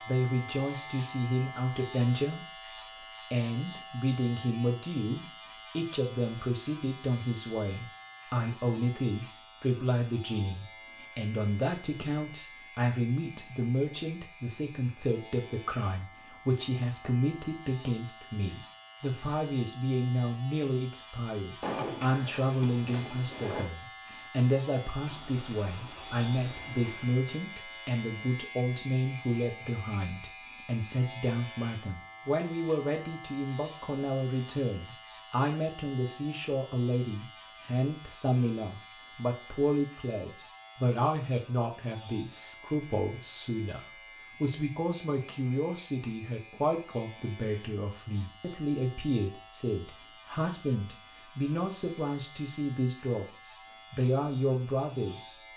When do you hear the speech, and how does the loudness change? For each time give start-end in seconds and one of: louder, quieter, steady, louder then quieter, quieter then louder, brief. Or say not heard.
0.0-55.4 steady.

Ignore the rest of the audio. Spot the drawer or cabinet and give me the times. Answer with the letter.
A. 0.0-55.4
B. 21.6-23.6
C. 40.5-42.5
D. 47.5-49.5
B.